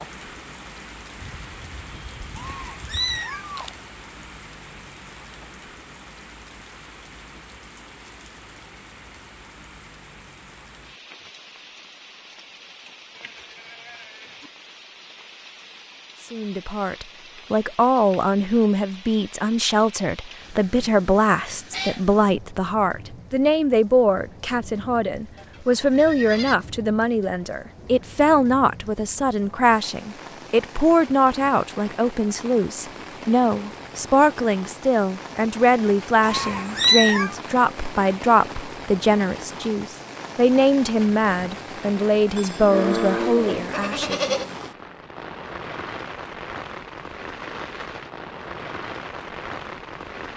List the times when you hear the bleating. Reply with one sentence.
The bleating can be heard from 1.2 to 3.2 s, from 13.2 to 14.5 s, from 25.4 to 26.6 s and from 42.4 to 44.5 s.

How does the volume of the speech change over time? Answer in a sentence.
The loudness of the speech stays about the same.